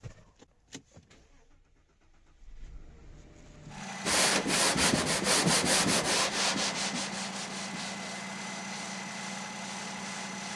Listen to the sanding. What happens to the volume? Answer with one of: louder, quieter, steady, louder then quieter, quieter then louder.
quieter.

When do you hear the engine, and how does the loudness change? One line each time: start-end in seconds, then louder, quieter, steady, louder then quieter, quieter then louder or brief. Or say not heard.
0.0-10.5 louder.